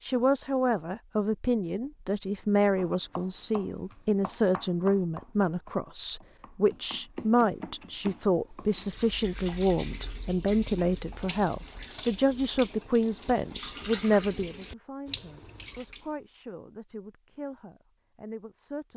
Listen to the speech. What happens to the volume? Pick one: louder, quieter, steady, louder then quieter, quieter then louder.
quieter.